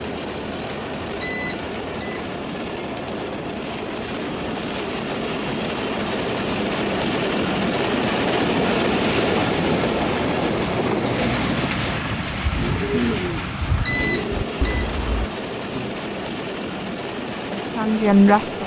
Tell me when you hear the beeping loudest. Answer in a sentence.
The volume of the beeping peaks at 14 seconds.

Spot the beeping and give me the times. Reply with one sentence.
You can hear the beeping from 1.2 to 2.2 s and from 13.8 to 14.8 s.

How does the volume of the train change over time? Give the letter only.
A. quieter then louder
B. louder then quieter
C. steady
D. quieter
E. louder
B.